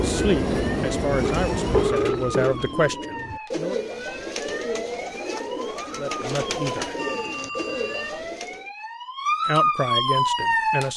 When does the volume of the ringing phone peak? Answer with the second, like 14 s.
2 s.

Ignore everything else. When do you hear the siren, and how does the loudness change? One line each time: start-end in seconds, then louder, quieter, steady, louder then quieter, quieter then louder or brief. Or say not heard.
0.0-10.9 louder.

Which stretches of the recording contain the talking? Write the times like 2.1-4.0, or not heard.
0.0-3.8, 6.0-7.0, 9.4-10.9.